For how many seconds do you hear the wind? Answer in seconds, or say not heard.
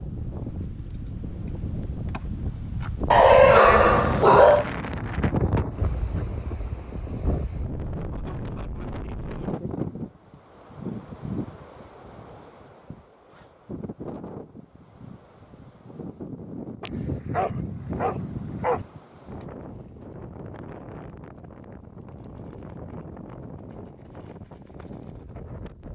26 s.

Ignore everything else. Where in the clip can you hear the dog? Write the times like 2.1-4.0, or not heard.
3.1-4.7, 16.8-18.9.